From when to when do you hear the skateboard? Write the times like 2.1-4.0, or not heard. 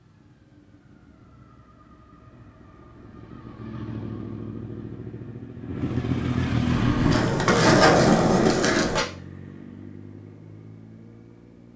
6.7-9.1.